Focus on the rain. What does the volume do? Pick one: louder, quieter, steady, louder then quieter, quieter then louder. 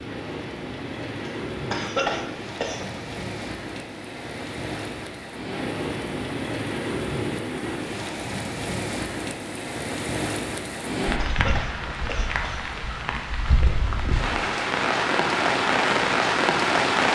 louder.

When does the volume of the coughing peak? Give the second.
2 s.